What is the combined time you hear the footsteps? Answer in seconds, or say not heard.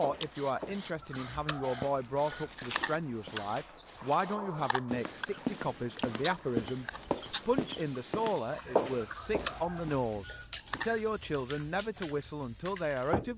10 s.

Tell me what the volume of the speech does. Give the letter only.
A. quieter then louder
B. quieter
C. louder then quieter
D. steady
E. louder
D.